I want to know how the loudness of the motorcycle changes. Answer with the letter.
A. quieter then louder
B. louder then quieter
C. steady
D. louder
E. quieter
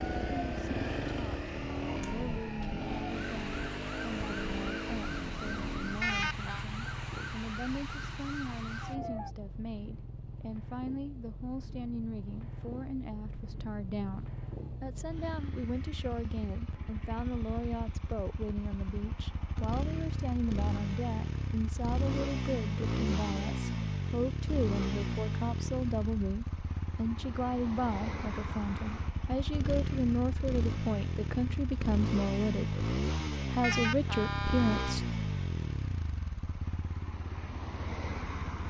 A.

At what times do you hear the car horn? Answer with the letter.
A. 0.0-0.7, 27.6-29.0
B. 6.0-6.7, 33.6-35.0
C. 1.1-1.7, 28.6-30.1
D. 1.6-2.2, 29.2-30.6
B.